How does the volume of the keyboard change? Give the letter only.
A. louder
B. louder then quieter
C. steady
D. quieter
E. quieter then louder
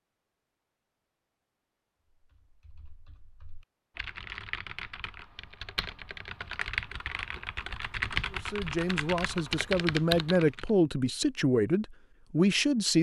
A.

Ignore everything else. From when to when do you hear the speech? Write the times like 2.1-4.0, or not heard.
8.3-12.9.